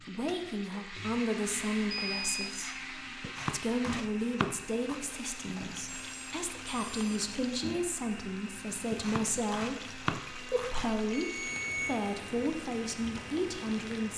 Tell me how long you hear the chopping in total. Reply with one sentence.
You can hear the chopping for 4 seconds altogether.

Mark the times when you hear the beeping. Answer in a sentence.
You can hear the beeping from 1.9 to 2.5 s, from 5.5 to 7.3 s and from 11.1 to 11.9 s.